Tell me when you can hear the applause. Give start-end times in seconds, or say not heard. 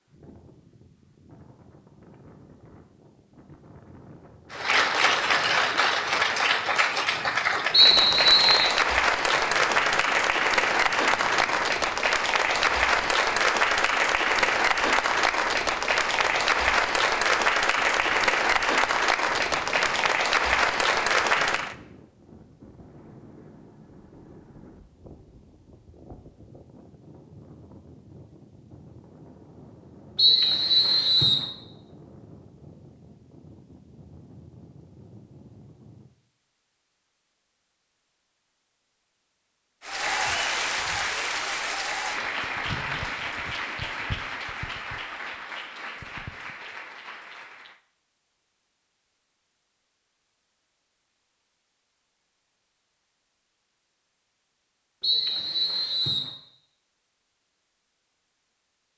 4.5-21.8, 39.8-47.8.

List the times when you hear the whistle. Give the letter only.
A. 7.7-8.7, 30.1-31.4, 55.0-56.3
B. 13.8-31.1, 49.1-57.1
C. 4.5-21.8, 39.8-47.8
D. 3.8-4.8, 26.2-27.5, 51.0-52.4
A.